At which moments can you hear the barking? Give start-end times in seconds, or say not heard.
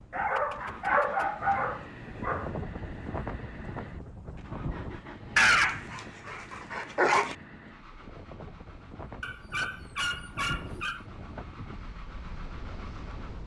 0.1-2.5, 5.3-7.3, 9.2-11.1.